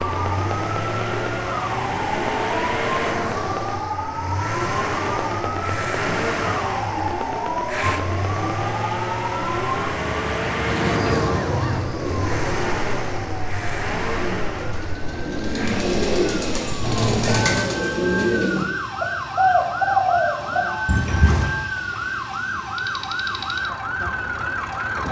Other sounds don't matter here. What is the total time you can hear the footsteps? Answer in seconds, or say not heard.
not heard.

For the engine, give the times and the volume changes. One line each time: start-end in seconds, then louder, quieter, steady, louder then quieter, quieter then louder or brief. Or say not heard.
0.0-25.0 quieter.